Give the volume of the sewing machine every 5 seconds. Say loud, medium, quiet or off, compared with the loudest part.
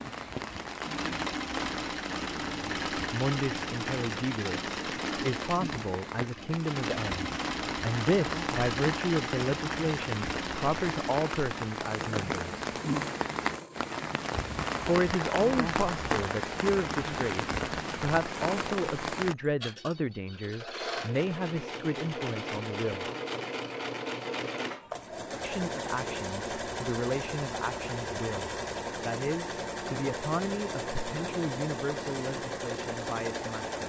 loud, loud, medium, medium, loud, loud, loud.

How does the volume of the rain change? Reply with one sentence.
The volume of the rain goes up.